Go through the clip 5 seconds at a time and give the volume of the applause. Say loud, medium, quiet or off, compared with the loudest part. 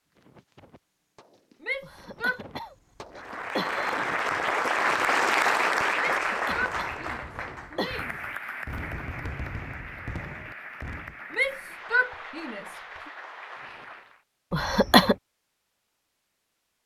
loud, loud, quiet, off.